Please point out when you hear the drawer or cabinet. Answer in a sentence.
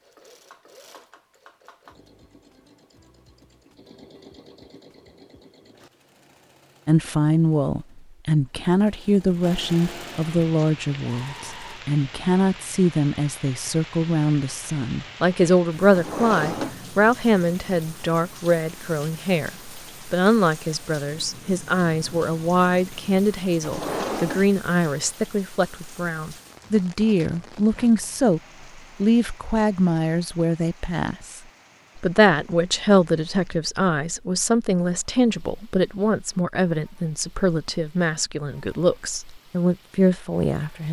The drawer or cabinet can be heard from 15.9 to 16.8 s and from 23.6 to 24.5 s.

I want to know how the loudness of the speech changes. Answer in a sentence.
The loudness of the speech stays about the same.